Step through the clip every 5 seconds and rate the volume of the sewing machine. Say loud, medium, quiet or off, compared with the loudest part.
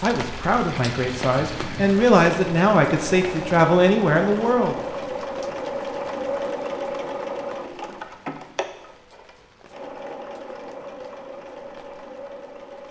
loud, loud, medium.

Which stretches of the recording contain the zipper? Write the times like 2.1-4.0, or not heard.
not heard.